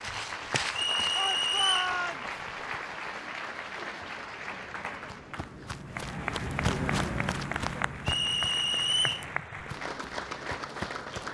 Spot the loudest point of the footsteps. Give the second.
7 s.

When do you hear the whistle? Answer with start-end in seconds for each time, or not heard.
0.8-1.9, 8.1-9.2.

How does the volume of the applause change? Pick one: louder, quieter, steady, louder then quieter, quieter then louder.
steady.